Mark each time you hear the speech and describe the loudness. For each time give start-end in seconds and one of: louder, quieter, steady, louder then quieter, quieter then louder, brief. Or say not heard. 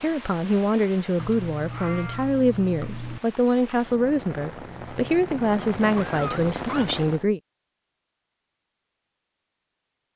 0.0-7.4 steady.